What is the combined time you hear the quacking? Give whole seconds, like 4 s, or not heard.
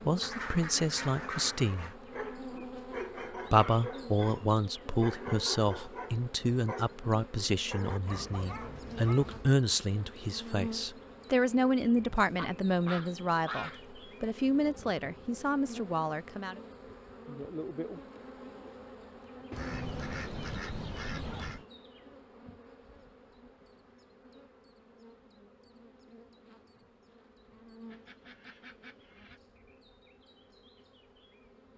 7 s.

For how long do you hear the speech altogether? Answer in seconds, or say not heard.
15 s.